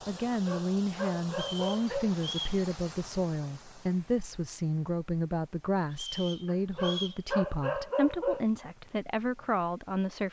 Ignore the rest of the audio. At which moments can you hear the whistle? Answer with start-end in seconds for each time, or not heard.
1.3-2.6, 5.9-7.2.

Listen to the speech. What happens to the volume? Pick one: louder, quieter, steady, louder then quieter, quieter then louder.
steady.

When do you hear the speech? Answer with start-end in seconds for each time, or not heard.
0.1-10.2.